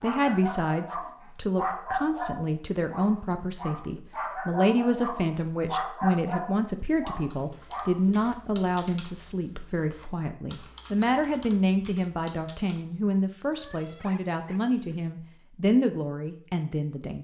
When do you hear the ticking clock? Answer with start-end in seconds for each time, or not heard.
not heard.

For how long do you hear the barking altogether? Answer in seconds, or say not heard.
8 s.